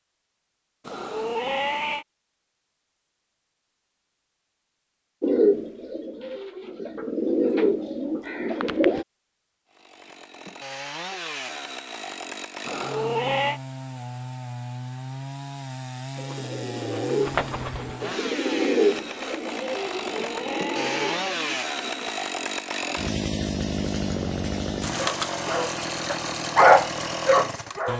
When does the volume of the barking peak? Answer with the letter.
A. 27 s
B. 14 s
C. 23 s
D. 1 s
A.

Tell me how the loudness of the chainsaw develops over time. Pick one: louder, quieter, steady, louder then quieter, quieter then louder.
louder.